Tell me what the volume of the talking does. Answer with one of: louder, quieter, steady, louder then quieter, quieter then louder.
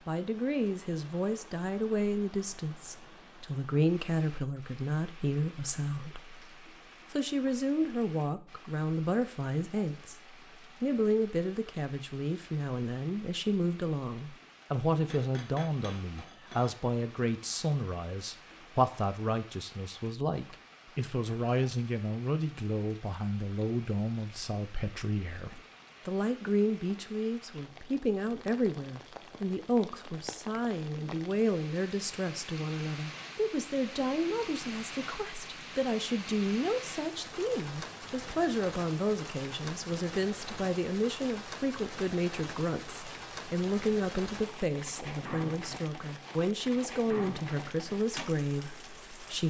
steady.